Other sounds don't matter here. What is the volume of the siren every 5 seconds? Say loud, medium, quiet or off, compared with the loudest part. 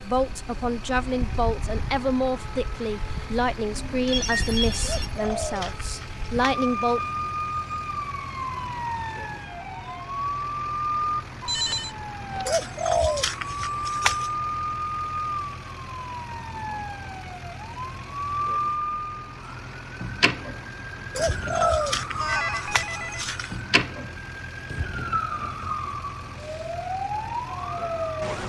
medium, loud, loud, loud, loud, loud.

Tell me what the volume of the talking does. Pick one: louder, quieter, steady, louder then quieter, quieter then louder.
steady.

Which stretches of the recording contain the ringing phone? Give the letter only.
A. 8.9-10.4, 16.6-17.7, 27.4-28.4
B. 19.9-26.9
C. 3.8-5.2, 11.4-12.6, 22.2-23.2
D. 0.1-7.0
C.